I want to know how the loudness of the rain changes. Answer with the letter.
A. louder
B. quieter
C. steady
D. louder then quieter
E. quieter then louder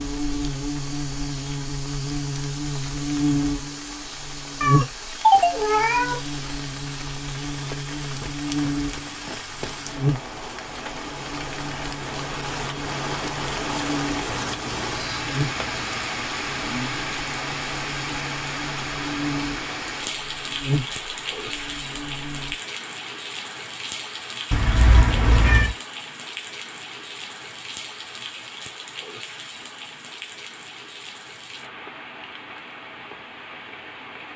D.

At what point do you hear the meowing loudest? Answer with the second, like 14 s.
5 s.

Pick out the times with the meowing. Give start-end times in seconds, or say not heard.
4.6-6.2, 14.4-16.3, 24.5-25.8.